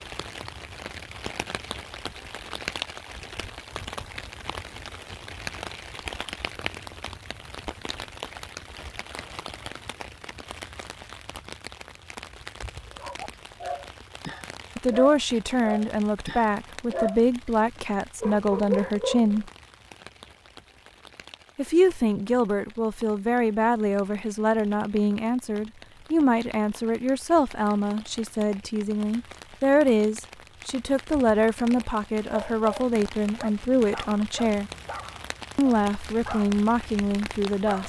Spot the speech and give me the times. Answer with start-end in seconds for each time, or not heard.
14.8-19.5, 21.6-34.7, 35.5-37.8.